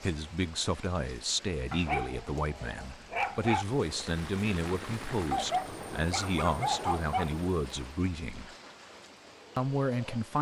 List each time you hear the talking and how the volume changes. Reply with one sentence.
The talking can be heard from 0.0 to 8.5 s, at a steady volume; and briefly from 9.6 to 10.3 s.